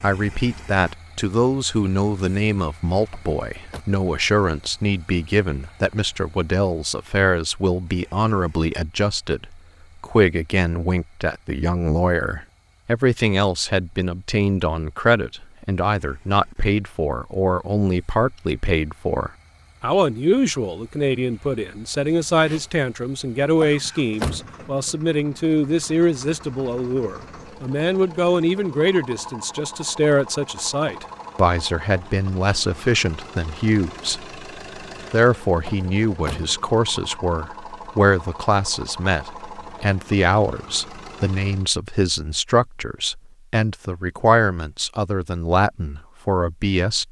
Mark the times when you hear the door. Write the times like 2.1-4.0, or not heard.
3.1-3.9, 23.6-24.9, 35.6-37.0.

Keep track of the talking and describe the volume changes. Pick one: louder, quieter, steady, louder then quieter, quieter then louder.
steady.